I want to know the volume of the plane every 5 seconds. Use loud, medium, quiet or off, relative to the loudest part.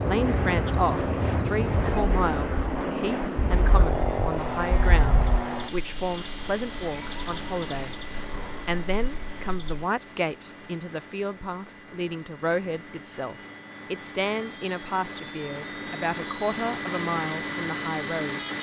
loud, medium, quiet, loud.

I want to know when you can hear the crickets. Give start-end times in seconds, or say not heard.
0.0-9.8.